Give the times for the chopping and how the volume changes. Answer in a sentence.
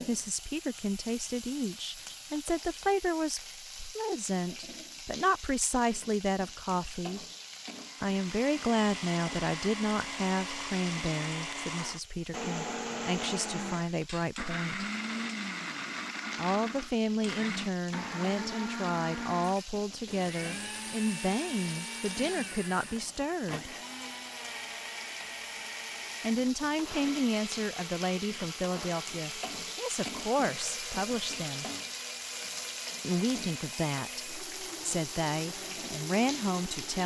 You can't hear the chopping here.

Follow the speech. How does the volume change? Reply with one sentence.
The volume of the speech stays about the same.